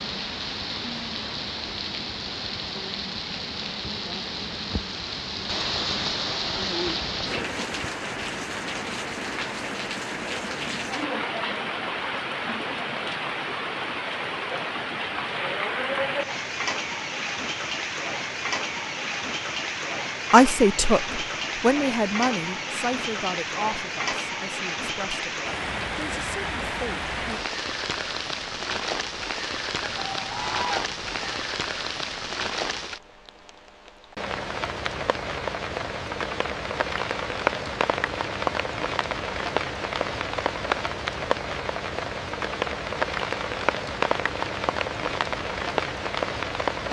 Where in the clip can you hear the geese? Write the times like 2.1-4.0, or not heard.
29.8-31.4.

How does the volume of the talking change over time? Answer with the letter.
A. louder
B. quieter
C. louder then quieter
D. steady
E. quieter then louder
B.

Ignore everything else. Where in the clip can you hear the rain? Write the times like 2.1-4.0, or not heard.
0.0-46.8.